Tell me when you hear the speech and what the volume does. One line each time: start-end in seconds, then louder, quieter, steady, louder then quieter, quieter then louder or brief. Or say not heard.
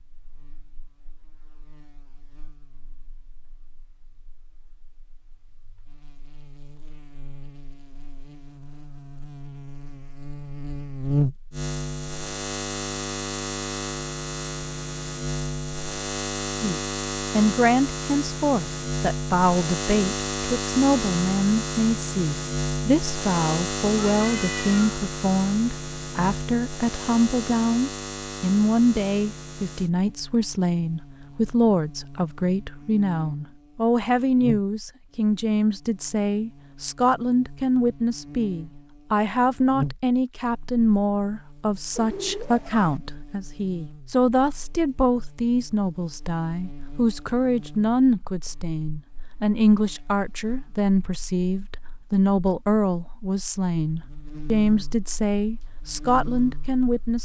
16.6-57.2 steady.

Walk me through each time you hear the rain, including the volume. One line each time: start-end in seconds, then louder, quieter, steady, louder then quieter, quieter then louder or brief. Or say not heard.
not heard.